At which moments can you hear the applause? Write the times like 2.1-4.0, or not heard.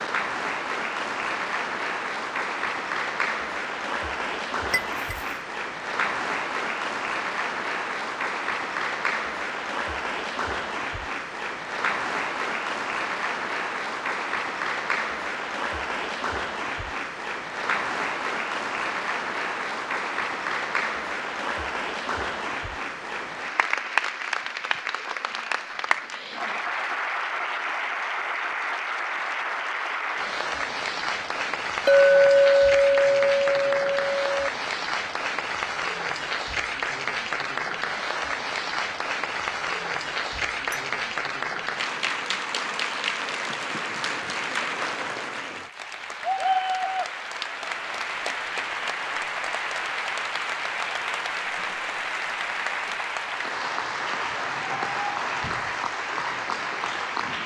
0.0-57.4.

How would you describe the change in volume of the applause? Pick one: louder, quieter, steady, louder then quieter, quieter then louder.
steady.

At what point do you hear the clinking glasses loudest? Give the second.
32 s.